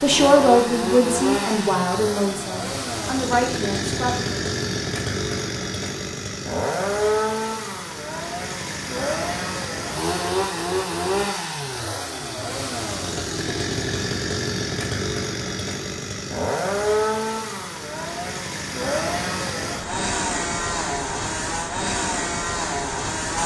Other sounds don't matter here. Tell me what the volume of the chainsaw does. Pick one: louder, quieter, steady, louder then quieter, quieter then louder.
steady.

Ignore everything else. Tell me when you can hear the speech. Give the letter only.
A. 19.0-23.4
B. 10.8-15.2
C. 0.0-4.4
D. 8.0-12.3
C.